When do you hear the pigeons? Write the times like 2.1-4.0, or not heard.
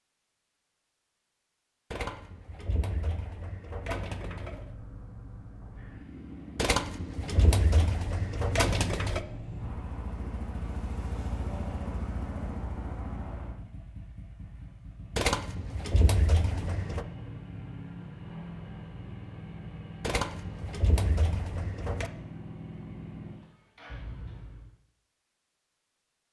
1.9-4.7, 6.5-9.2, 15.2-17.1, 20.0-22.1.